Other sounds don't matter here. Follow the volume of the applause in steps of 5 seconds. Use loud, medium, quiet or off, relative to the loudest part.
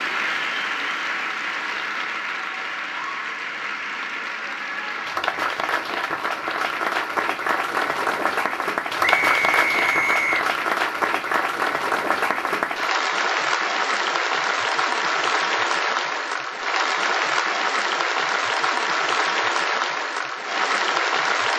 medium, loud, loud, loud, loud.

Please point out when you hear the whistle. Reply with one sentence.
You can hear the whistle from 9.0 to 10.5 s.